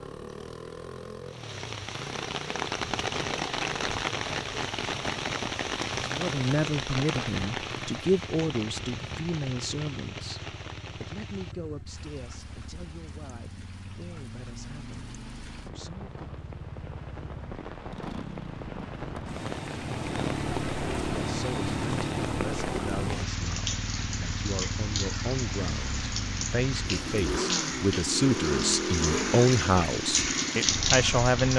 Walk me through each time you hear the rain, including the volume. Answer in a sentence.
You can hear the rain from 0.0 to 31.5 s, getting quieter then louder.